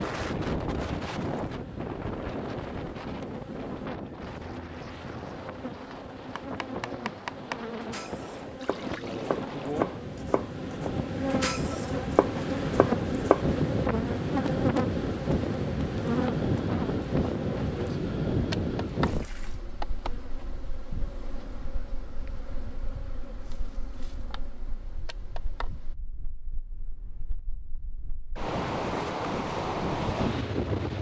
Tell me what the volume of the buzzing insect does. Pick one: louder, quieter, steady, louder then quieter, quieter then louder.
louder then quieter.